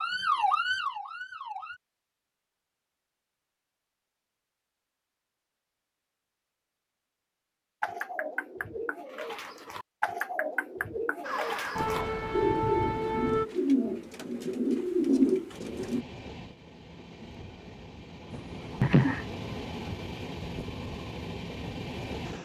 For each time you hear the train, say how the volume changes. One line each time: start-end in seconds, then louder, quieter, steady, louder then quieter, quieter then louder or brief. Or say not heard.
15.4-22.4 louder.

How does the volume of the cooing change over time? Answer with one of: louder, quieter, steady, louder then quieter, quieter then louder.
louder.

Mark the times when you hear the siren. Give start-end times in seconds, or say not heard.
0.0-1.8, 11.2-13.4.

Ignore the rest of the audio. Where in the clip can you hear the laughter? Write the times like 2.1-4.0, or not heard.
18.3-19.2.